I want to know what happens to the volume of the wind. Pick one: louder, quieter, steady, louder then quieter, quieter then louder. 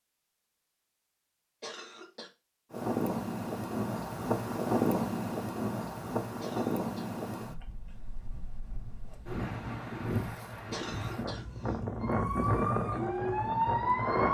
quieter then louder.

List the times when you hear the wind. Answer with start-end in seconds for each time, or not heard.
2.7-14.2.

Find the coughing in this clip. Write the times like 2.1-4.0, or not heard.
1.6-2.3, 6.4-7.2, 10.7-11.8.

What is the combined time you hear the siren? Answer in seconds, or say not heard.
2 s.